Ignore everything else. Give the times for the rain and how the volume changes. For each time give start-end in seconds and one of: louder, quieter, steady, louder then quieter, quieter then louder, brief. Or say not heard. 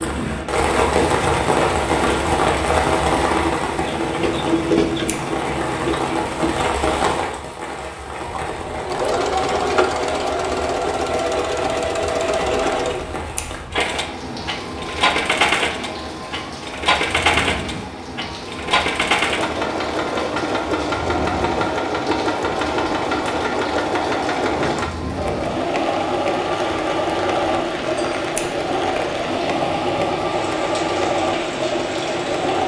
0.0-32.6 quieter.